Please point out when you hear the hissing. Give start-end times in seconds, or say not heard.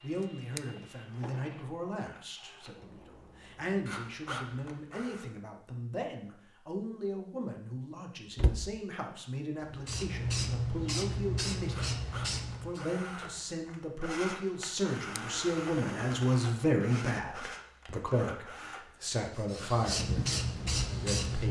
9.6-12.8, 19.3-21.4.